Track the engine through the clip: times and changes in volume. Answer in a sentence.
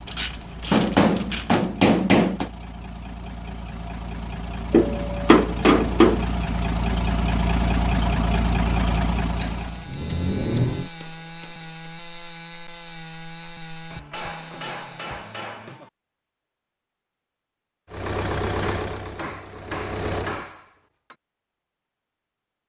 You can hear the engine from 0.0 to 10.9 s, getting louder; and briefly from 17.9 to 20.4 s.